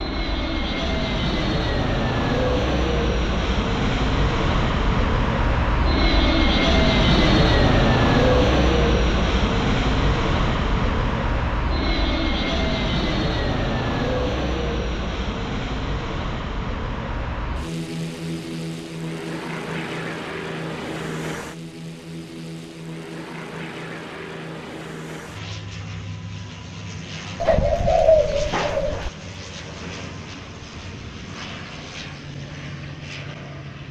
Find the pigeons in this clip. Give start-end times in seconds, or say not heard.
27.4-29.1.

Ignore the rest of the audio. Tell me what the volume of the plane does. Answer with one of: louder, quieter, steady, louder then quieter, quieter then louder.
quieter.